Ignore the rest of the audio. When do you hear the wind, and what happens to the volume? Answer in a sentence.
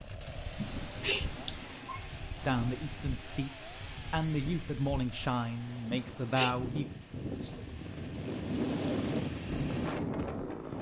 The wind can be heard from 0.0 to 10.7 s, getting louder.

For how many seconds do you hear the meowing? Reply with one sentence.
The meowing can be heard for 2 seconds in total.